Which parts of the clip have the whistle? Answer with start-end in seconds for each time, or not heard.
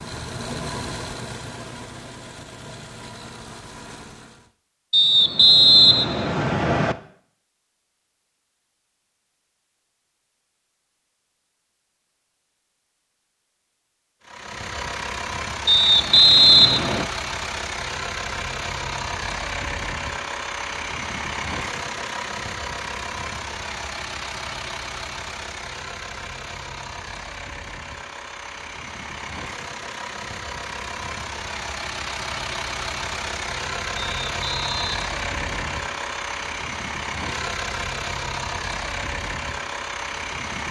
4.9-7.0, 15.7-17.1, 34.0-35.8.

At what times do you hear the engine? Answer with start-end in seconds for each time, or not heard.
0.0-4.5, 14.2-40.6.